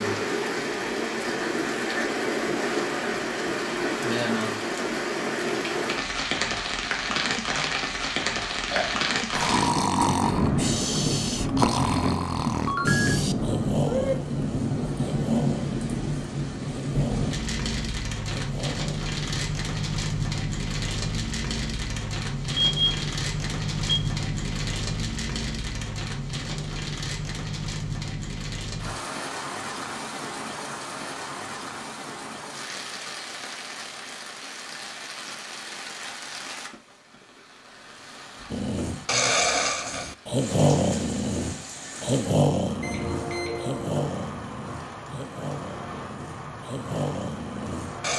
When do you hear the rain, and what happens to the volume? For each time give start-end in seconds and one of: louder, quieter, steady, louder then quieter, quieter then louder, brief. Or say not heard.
0.0-48.1 quieter.